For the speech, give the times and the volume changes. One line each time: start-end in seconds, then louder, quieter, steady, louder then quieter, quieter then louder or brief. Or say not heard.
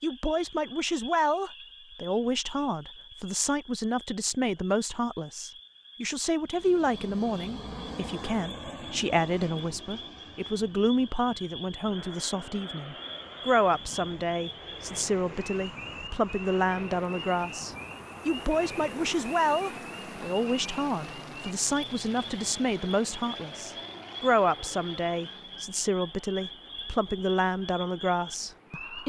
0.0-29.0 steady.